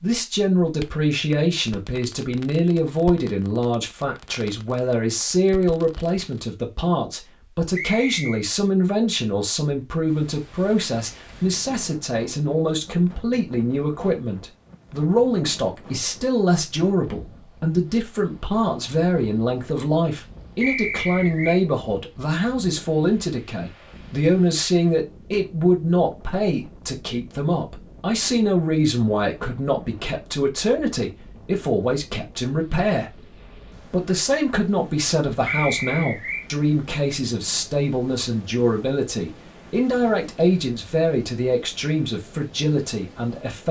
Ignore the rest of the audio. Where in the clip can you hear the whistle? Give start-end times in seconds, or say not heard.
7.8-8.4, 20.6-21.6, 35.5-36.5.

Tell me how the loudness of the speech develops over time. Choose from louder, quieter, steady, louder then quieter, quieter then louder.
steady.